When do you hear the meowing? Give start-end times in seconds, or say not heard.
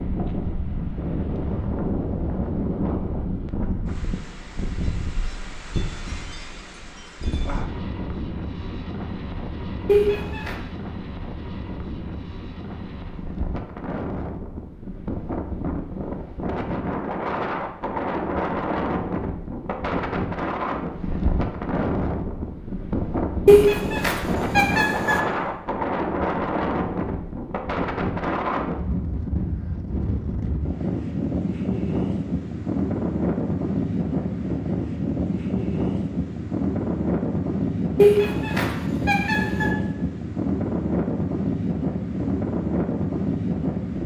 9.8-10.6, 23.4-25.2, 38.0-39.7.